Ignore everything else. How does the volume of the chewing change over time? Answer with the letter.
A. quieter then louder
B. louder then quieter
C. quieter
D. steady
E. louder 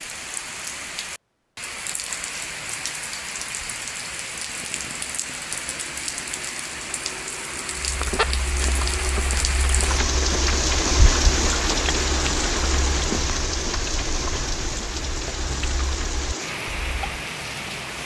C.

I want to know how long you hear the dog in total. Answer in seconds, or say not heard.
not heard.